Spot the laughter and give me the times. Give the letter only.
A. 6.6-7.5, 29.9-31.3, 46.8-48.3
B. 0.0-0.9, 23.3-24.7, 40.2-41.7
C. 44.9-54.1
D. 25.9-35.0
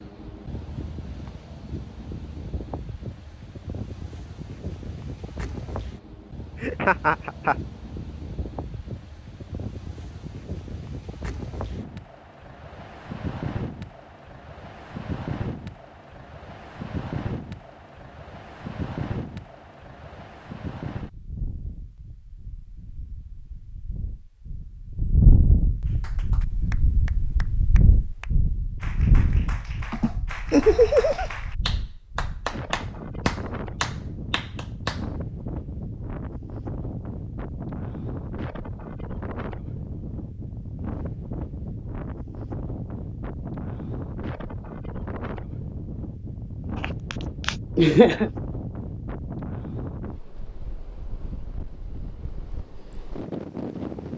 A.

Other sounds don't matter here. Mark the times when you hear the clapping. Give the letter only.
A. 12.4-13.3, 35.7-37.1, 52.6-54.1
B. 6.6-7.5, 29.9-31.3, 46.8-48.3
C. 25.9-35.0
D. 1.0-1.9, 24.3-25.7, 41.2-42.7
C.